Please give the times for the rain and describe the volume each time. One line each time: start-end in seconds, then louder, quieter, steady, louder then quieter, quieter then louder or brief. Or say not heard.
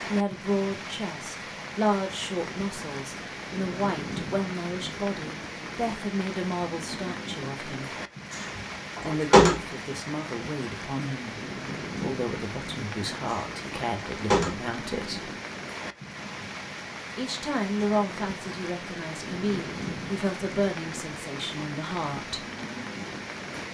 0.0-23.6 steady.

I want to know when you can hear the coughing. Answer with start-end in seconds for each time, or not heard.
not heard.